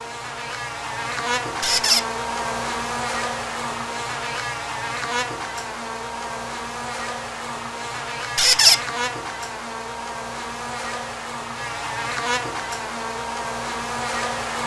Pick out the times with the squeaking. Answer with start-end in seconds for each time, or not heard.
1.6-2.0, 8.3-8.8.